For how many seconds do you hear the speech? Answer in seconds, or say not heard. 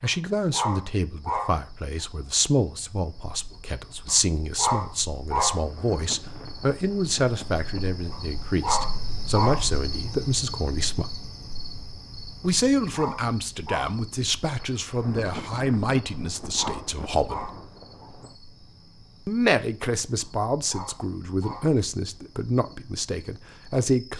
21 s.